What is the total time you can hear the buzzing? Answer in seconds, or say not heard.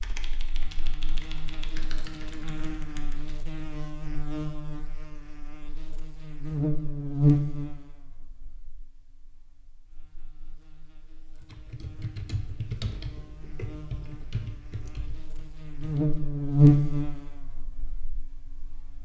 19 s.